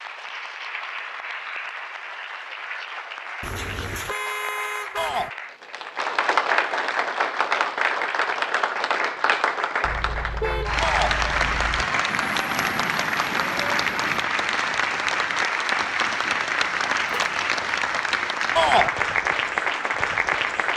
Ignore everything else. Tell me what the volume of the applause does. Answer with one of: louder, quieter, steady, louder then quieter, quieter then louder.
louder.